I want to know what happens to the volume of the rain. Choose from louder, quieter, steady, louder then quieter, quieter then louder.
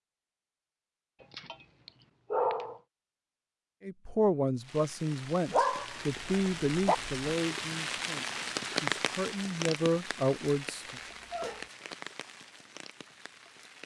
louder then quieter.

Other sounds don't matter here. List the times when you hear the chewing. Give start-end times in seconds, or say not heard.
not heard.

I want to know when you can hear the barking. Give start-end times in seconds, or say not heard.
1.2-2.8, 5.5-7.2, 10.9-11.7.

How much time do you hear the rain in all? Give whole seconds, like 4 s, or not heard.
9 s.